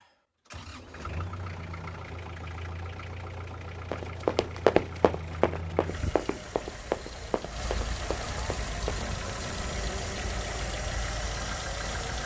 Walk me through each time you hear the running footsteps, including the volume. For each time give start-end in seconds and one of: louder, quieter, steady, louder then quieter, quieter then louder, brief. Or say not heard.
3.9-9.4 quieter.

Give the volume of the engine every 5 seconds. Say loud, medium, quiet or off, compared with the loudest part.
medium, loud, loud.